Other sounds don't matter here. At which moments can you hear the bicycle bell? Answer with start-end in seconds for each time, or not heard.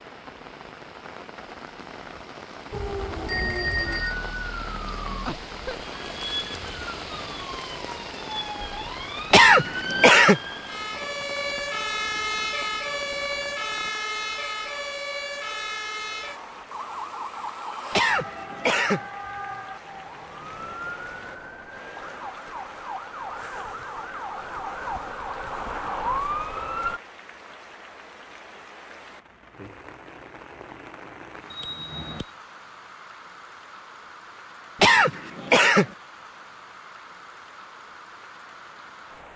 3.2-4.2, 31.5-32.4.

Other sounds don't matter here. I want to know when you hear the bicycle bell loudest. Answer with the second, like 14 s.
4 s.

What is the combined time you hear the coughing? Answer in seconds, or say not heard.
3 s.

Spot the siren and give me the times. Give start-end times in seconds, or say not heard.
2.7-27.0.